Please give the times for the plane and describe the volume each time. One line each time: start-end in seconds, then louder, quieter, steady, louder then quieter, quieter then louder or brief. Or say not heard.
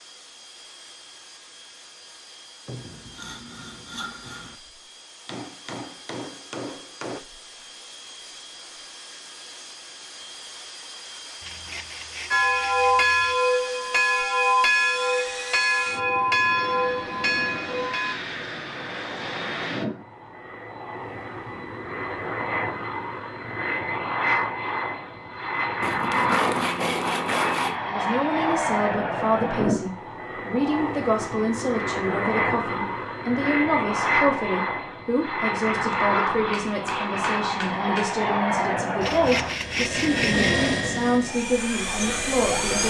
0.0-42.8 louder.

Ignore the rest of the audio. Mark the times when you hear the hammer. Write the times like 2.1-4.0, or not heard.
5.2-7.2, 36.5-38.1.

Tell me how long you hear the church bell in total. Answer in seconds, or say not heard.
6 s.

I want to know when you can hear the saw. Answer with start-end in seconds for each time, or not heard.
2.6-4.5, 11.4-13.3, 25.8-27.8, 39.0-40.6.